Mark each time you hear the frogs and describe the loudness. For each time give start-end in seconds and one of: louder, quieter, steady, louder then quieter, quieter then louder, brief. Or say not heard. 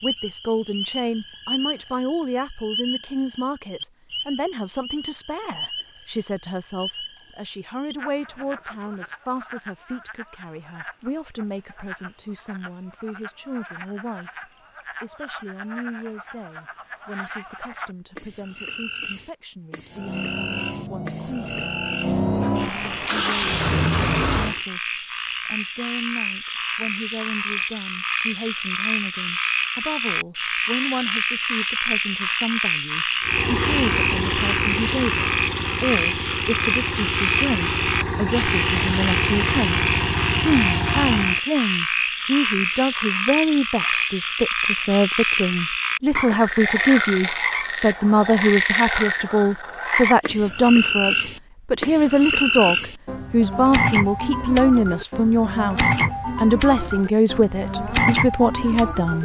0.0-59.1 louder.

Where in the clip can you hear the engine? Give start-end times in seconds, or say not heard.
19.9-24.6, 33.2-41.4.